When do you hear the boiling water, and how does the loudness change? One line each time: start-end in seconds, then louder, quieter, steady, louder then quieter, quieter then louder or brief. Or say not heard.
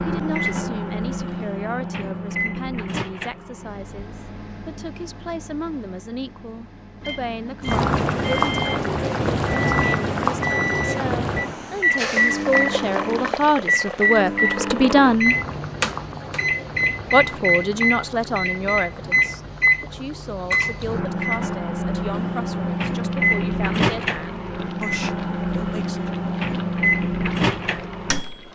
7.6-28.5 quieter.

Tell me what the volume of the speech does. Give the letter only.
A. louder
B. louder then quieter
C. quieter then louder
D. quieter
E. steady
B.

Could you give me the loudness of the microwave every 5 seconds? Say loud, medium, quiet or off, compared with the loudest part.
medium, medium, loud, loud, loud, loud.